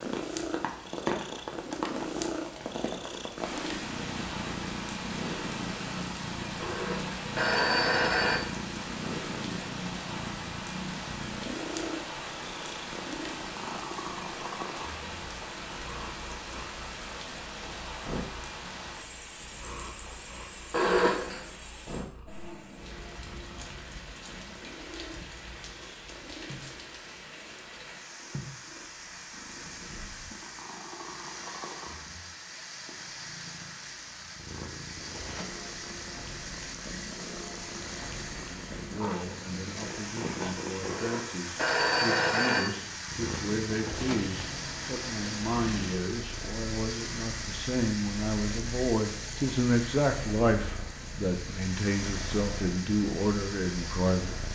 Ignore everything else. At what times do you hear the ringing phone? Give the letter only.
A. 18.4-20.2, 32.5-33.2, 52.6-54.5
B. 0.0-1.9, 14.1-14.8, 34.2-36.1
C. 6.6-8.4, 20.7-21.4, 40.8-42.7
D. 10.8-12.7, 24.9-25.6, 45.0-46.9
C.